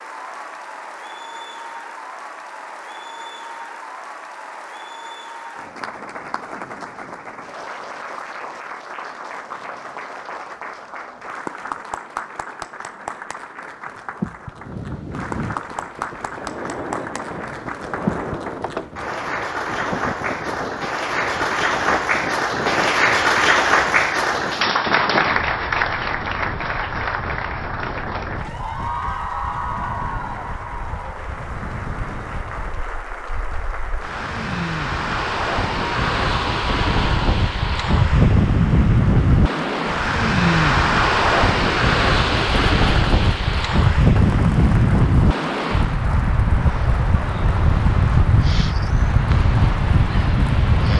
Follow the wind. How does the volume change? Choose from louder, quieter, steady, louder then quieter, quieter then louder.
louder.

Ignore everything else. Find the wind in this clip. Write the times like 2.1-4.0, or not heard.
14.6-50.9.